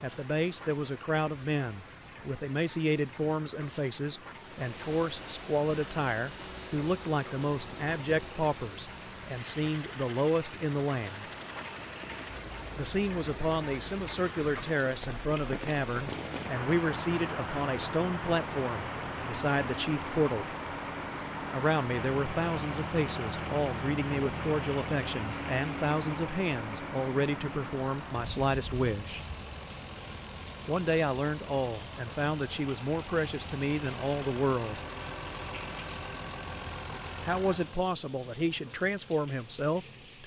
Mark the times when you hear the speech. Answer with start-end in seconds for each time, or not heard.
0.0-11.3, 12.8-20.5, 21.5-29.2, 30.6-34.8, 37.2-40.2.